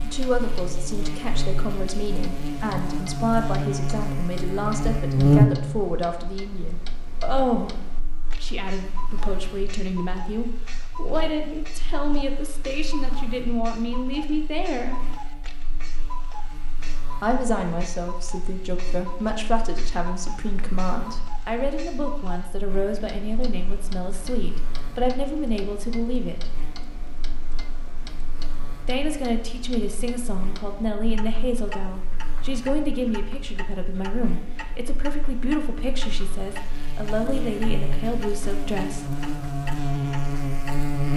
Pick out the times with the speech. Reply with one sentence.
The speech can be heard from 0.0 to 15.0 s, from 17.2 to 26.5 s and from 28.9 to 39.0 s.